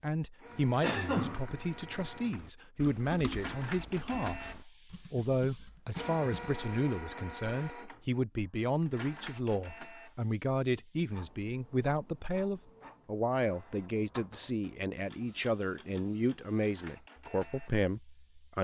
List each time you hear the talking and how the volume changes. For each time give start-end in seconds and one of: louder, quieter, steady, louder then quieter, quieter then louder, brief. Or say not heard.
0.0-18.5 steady.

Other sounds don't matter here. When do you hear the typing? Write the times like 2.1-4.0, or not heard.
0.5-6.6.